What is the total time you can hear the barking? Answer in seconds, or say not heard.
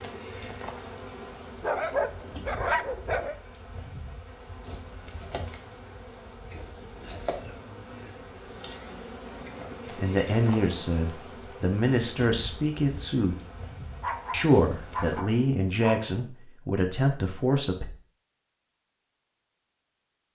4 s.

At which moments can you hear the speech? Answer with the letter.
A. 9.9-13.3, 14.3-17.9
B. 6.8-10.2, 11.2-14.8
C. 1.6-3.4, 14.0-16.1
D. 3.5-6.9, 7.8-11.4
A.